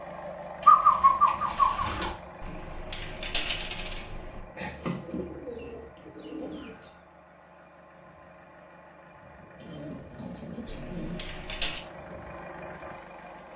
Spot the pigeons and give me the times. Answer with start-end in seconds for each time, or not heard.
0.6-2.1, 4.5-6.8, 9.6-11.2.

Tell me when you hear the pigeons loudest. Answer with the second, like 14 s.
1 s.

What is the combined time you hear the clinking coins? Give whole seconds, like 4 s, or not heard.
3 s.